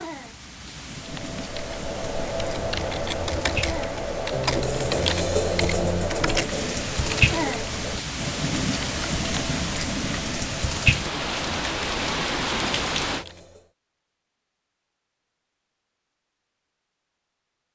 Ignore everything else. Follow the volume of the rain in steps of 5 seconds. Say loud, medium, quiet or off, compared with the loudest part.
medium, loud, loud, off.